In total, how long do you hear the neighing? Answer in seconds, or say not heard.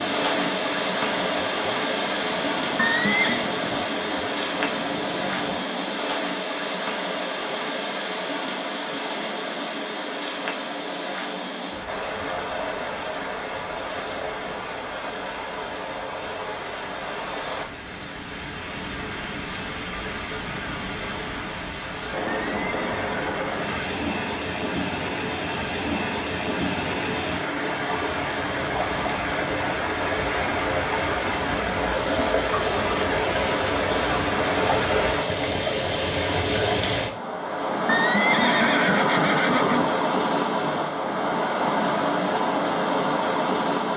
4 s.